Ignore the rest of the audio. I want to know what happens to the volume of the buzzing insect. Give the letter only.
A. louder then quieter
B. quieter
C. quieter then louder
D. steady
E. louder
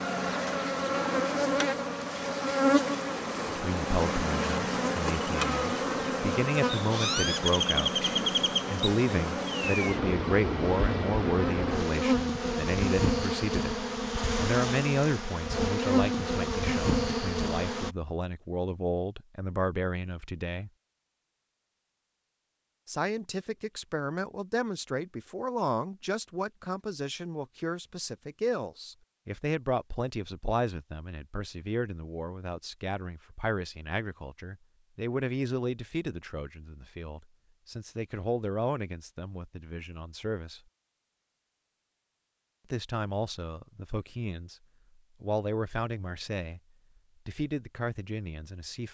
D.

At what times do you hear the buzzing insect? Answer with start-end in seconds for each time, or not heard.
0.0-17.9.